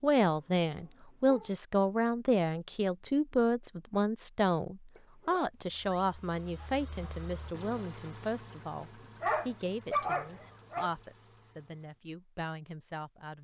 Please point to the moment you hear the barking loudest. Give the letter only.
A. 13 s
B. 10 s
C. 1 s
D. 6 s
B.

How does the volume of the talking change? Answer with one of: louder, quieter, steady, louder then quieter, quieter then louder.
quieter.